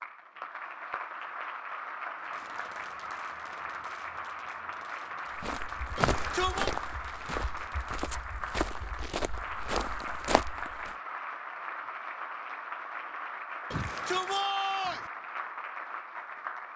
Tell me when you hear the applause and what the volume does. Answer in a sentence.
You can hear the applause from 0.0 to 16.7 s, at a steady volume.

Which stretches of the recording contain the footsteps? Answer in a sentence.
You can hear the footsteps from 5.3 to 10.9 s.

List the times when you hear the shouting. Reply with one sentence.
The shouting can be heard from 6.0 to 6.7 s and from 13.7 to 15.1 s.